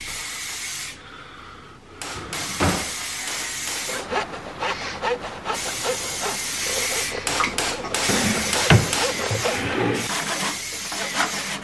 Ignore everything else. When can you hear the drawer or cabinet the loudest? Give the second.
9 s.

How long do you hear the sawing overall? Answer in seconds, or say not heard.
8 s.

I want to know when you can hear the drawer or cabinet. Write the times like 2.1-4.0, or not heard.
2.1-3.0, 8.1-10.1.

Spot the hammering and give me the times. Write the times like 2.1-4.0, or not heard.
2.0-4.0, 7.2-9.2.